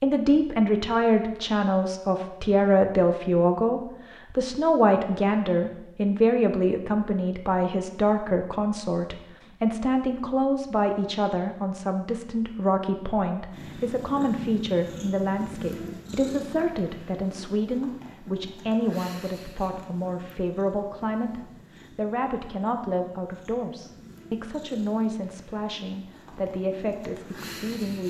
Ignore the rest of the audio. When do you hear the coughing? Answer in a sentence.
The coughing can't be heard in this clip.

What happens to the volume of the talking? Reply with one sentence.
The volume of the talking goes down.